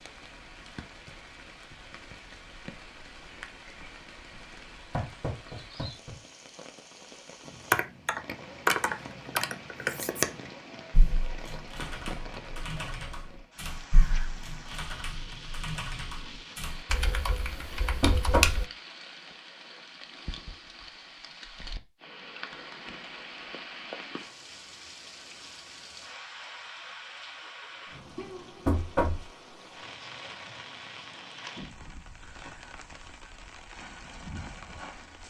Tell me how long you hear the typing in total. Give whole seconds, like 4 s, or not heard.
11 s.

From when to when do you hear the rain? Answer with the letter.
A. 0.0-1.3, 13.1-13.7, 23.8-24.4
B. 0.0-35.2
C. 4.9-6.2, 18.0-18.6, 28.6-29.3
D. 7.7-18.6
B.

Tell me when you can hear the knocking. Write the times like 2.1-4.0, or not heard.
4.9-6.2, 18.0-18.6, 28.6-29.3.